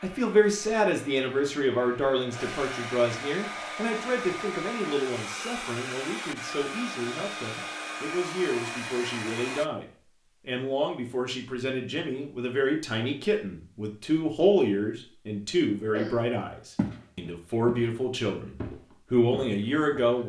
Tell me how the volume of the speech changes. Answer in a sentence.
The loudness of the speech goes down, then up.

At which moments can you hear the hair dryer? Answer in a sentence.
You can hear the hair dryer from 0.0 to 9.7 s.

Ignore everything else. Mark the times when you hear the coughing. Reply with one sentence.
You can hear the coughing from 15.7 to 16.2 s.